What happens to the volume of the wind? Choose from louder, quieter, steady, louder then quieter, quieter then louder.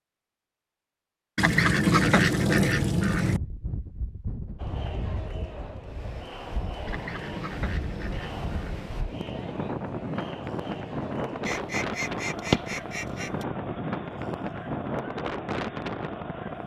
louder.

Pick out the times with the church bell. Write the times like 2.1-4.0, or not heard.
not heard.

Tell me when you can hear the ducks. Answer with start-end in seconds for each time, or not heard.
1.4-3.4, 6.8-8.9, 11.4-13.4.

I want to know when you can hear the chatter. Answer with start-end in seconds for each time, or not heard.
4.5-16.6.